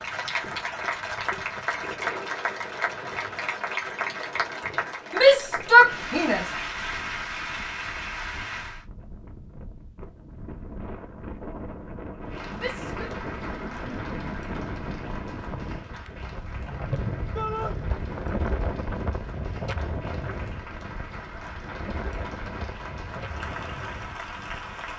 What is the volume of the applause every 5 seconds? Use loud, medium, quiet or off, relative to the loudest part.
loud, loud, medium, quiet, medium.